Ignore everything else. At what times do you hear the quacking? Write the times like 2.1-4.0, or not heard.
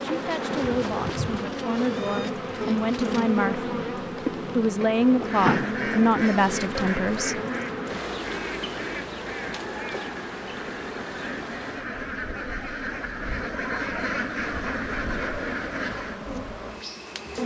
5.2-16.2.